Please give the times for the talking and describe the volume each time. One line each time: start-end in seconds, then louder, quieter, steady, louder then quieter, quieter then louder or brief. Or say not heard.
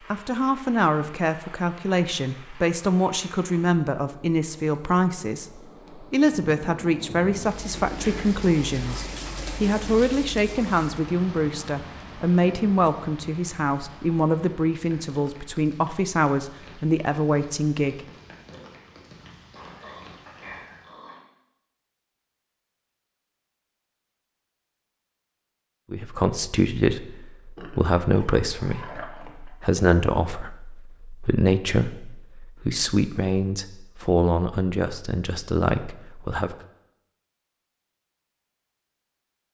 0.1-18.0 steady
25.9-36.5 steady.